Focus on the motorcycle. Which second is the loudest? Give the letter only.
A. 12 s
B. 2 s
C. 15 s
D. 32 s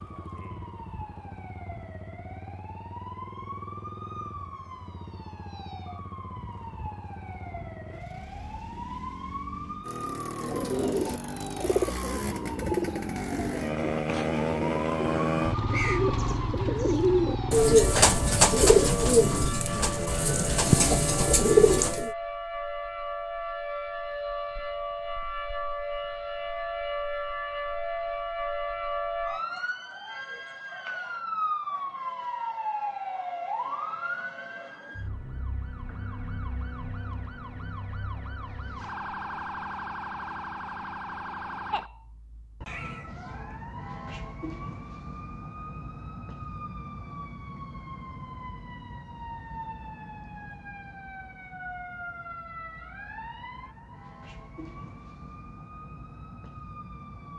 C.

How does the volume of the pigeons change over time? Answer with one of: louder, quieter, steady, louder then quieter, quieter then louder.
louder.